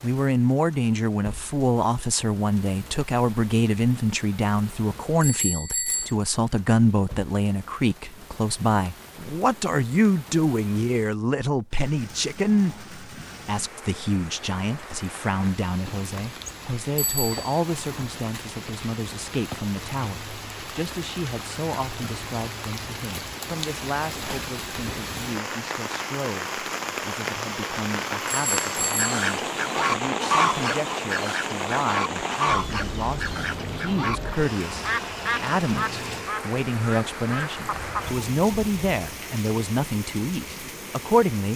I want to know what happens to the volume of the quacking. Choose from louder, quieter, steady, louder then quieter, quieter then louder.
quieter.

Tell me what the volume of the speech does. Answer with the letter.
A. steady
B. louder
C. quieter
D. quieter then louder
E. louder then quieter
D.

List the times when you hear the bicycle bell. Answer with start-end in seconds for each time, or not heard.
5.2-6.2, 16.9-17.4, 28.2-29.2.